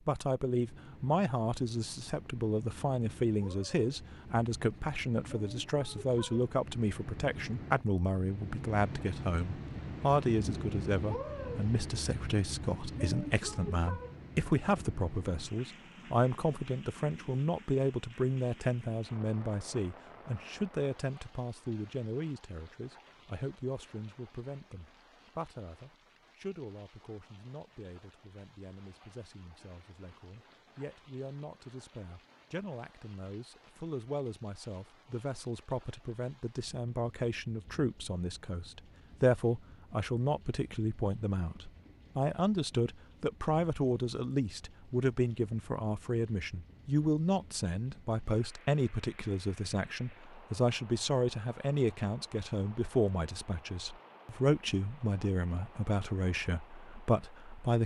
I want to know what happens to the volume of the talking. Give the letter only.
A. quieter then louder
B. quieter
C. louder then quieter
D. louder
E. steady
A.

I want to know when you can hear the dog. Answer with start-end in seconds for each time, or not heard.
not heard.